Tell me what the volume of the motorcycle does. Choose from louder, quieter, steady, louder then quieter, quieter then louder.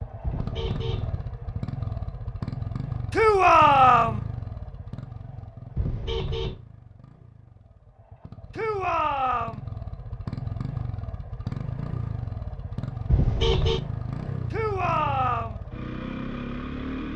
quieter then louder.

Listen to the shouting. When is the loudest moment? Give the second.
4 s.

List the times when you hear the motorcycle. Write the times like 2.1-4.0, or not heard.
0.0-17.1.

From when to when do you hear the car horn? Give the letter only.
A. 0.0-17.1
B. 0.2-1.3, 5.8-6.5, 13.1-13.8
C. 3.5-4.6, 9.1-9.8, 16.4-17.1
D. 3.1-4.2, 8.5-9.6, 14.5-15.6
B.